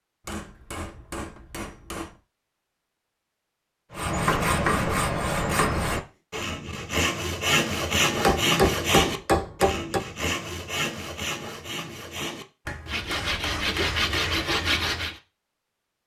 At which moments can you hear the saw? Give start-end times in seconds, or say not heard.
3.9-15.2.